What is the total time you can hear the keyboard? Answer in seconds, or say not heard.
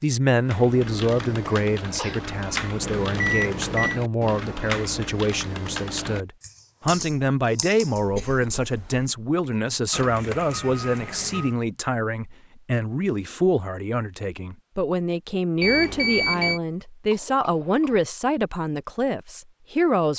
8 s.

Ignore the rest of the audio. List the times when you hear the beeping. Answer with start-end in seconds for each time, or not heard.
2.8-4.0, 9.9-11.6, 15.6-16.6.